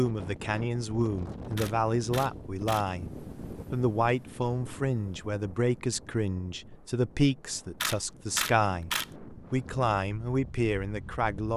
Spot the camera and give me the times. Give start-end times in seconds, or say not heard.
1.6-2.9, 7.8-9.1.